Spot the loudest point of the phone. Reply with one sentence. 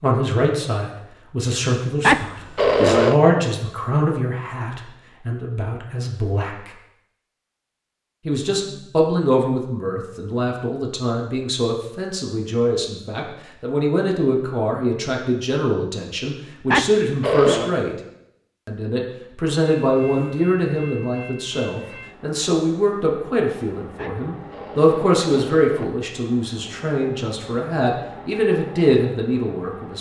The volume of the phone peaks at 3 seconds.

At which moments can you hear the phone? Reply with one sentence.
You can hear the phone from 2.0 to 3.2 s, from 16.7 to 17.8 s and from 23.9 to 25.9 s.